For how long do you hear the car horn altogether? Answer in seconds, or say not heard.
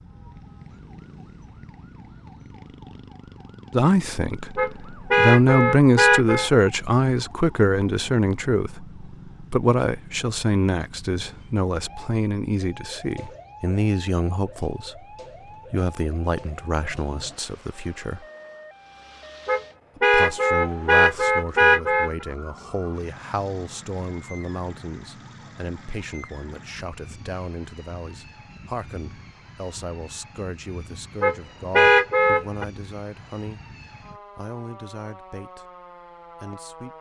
6 s.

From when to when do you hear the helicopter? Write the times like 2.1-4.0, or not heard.
not heard.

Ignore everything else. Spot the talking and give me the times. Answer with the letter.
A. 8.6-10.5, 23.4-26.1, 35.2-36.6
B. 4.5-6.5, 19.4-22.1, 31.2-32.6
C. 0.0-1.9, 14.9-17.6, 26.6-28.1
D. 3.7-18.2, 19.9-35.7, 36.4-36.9
D.